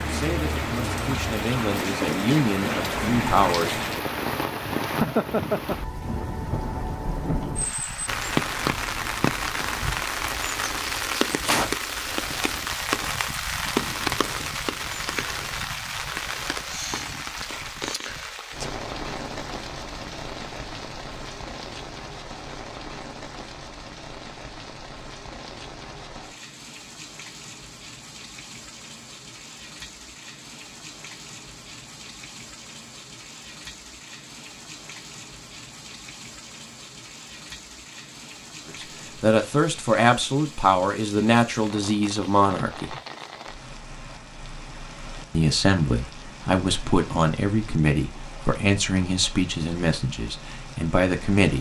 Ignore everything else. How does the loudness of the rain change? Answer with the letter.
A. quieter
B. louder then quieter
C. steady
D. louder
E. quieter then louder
A.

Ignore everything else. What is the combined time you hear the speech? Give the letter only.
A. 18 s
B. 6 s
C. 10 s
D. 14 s
D.